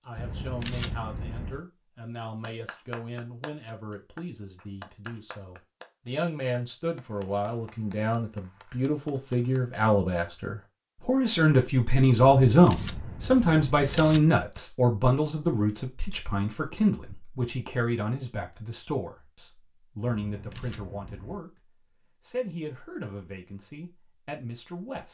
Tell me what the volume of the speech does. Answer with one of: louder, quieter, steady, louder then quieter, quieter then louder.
louder then quieter.